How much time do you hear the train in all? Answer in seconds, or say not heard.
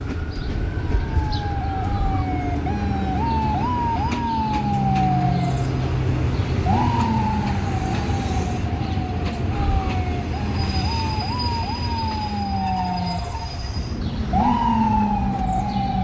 16 s.